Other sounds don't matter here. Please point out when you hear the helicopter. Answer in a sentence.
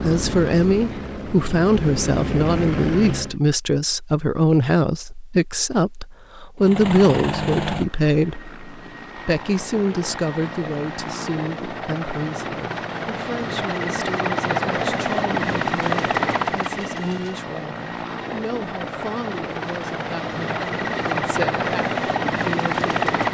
The helicopter can be heard from 0.0 to 3.4 s and from 6.6 to 23.2 s.